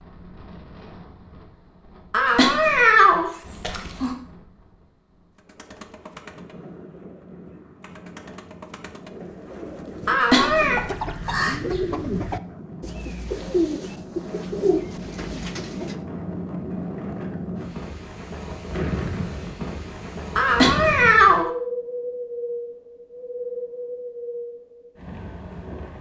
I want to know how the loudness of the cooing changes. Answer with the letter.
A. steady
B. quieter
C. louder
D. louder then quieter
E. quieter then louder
C.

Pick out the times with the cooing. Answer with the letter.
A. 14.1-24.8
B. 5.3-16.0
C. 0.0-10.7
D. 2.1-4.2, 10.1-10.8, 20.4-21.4
B.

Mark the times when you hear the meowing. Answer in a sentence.
The meowing can be heard from 2.1 to 4.2 s, from 10.1 to 10.8 s and from 20.4 to 21.4 s.